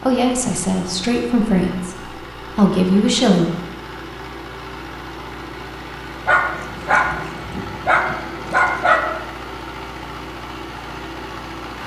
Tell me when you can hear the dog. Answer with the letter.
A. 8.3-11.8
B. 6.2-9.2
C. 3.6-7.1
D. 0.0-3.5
B.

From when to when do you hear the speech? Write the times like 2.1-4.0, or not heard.
0.0-3.5.